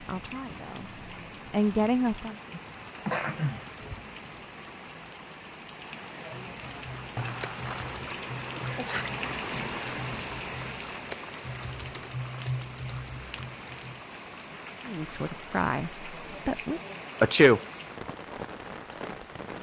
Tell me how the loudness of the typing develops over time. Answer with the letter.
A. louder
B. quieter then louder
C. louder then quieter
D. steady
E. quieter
A.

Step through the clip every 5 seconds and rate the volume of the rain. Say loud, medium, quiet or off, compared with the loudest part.
medium, loud, loud, loud.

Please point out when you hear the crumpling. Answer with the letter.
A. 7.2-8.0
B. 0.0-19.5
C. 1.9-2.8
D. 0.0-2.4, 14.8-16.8
A.